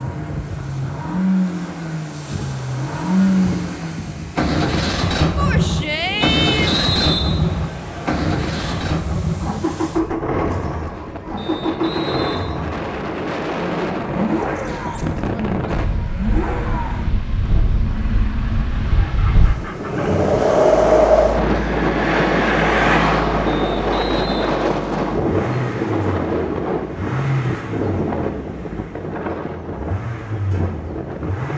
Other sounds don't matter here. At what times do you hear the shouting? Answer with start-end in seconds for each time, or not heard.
5.3-6.9.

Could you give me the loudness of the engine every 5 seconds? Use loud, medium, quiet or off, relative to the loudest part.
loud, loud, loud, medium, medium, medium, medium.